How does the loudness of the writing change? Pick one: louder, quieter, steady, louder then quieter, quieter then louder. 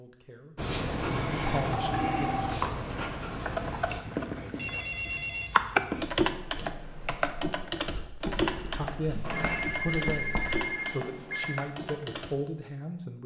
quieter.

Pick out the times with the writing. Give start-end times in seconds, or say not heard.
0.6-10.6.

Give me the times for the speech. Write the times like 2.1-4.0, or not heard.
0.0-2.5, 8.0-13.2.